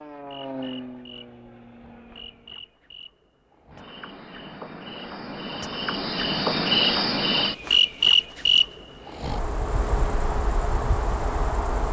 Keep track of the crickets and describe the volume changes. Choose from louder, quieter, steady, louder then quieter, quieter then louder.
louder then quieter.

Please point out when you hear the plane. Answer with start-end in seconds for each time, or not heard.
0.0-2.6.